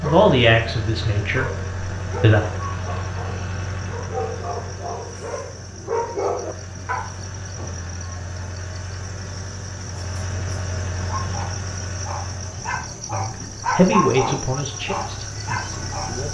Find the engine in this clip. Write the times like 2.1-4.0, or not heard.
0.0-16.2.